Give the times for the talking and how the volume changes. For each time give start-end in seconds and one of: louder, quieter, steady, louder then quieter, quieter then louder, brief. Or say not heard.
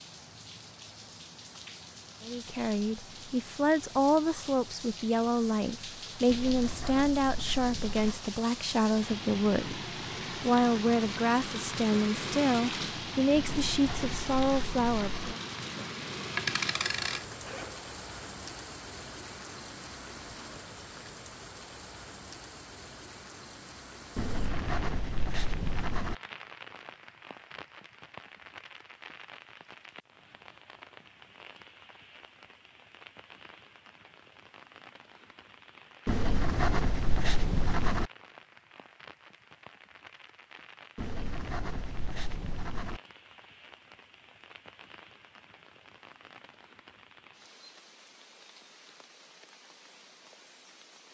2.2-15.3 steady.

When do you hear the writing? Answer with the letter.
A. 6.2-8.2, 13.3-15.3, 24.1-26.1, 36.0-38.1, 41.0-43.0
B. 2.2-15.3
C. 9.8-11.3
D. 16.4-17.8
A.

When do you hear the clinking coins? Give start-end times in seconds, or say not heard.
16.4-17.8.